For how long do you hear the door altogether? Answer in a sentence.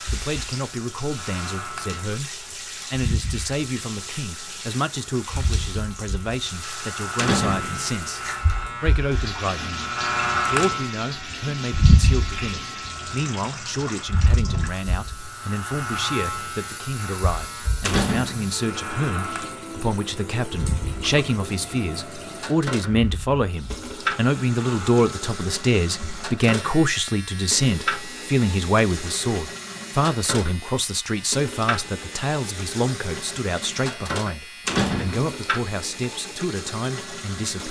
The door can be heard for 2 seconds in total.